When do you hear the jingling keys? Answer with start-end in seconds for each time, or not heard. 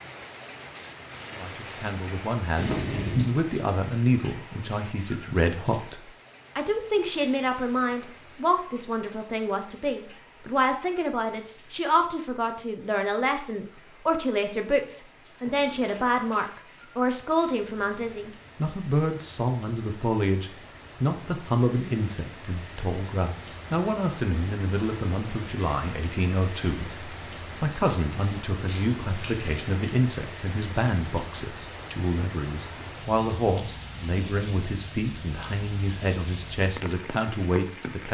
2.5-3.2, 15.4-16.5, 28.1-29.9.